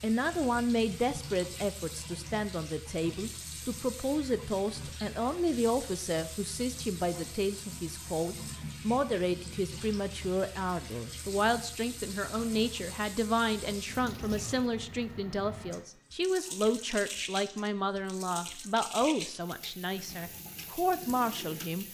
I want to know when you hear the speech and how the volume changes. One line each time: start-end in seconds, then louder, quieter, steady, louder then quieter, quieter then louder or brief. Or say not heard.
0.0-21.8 steady.